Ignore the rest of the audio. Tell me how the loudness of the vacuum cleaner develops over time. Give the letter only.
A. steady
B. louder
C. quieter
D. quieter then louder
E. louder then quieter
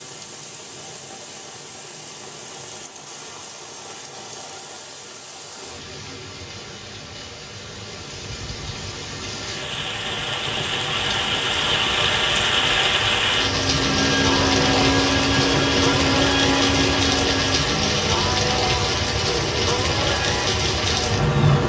A.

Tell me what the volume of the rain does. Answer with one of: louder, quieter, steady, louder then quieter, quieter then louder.
louder.